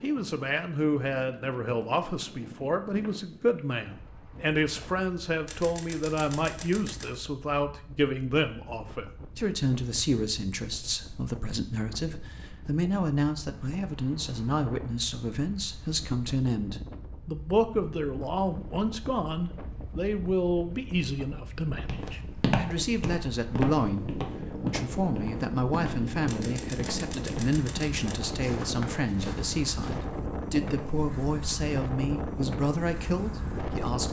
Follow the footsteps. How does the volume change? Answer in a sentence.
The volume of the footsteps goes down.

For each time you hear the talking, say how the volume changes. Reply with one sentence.
You can hear the talking from 0.0 to 34.0 s, at a steady volume.